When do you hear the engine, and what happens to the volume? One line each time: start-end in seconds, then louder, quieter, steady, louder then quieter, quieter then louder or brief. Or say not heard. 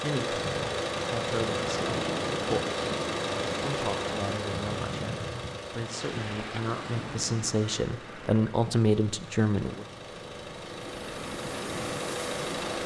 0.0-12.8 quieter then louder.